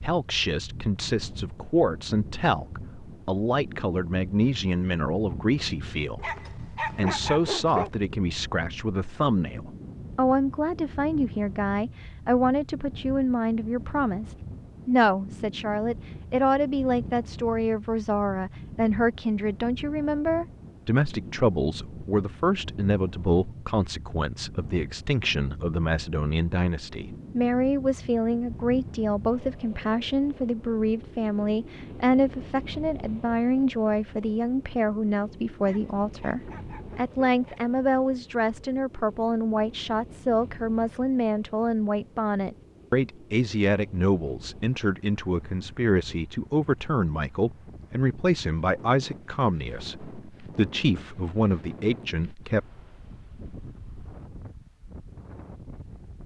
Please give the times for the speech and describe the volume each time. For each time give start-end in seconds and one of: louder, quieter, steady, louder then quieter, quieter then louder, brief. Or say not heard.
0.0-52.6 steady.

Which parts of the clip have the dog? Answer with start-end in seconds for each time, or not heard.
6.2-7.9, 35.6-37.6.